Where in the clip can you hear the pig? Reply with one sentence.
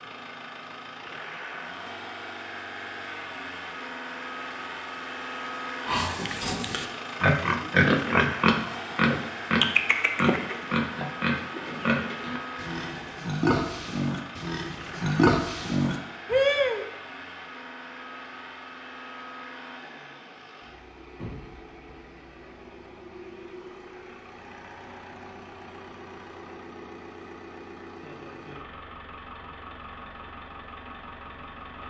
The pig can be heard from 5.8 to 16.9 s.